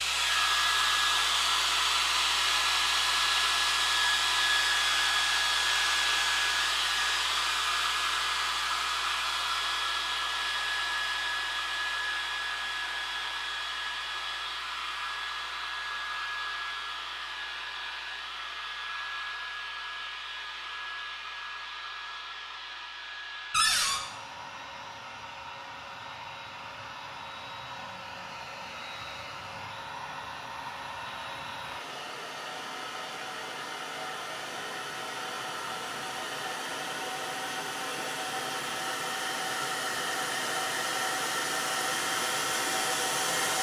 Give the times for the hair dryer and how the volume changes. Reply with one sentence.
You can hear the hair dryer from 0.0 to 43.5 s, getting quieter then louder.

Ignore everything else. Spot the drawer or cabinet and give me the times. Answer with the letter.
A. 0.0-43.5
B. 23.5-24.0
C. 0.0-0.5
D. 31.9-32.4
B.